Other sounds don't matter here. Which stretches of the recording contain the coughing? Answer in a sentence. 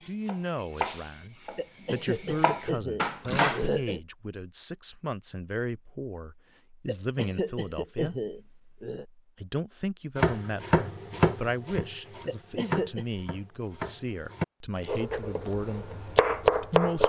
The coughing can be heard from 1.6 to 4.0 s, from 6.8 to 9.1 s and from 12.2 to 13.1 s.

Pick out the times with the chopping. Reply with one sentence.
The chopping can be heard from 0.0 to 3.7 s and from 10.2 to 17.0 s.